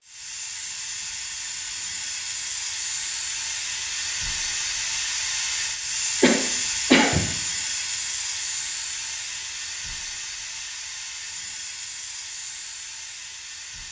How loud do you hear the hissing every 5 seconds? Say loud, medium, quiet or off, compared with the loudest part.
loud, loud, medium.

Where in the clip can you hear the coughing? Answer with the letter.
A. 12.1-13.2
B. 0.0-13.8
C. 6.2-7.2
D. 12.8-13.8
C.